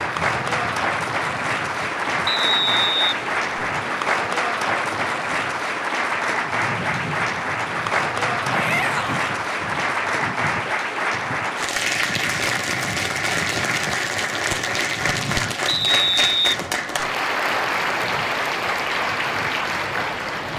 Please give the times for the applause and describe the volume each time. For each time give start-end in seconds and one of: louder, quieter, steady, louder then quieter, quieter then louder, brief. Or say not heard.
0.0-20.5 steady.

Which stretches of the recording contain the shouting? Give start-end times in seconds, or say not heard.
8.5-9.2.